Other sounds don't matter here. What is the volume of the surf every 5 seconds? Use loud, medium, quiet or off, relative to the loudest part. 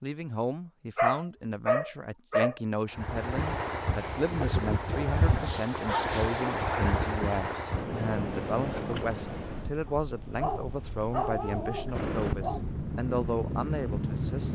loud, loud, quiet.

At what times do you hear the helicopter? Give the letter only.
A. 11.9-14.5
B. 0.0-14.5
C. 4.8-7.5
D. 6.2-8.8
A.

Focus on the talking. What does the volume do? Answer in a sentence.
The loudness of the talking stays about the same.